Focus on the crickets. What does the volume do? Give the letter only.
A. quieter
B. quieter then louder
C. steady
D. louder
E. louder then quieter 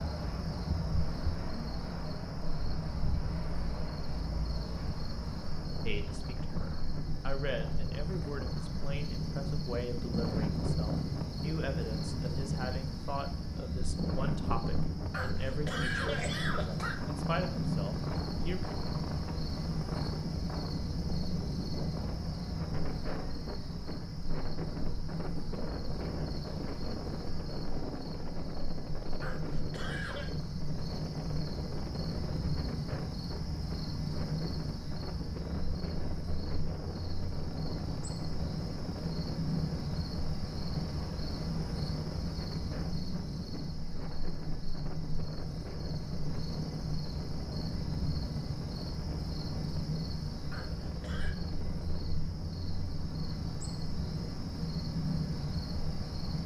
C.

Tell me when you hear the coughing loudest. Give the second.
16 s.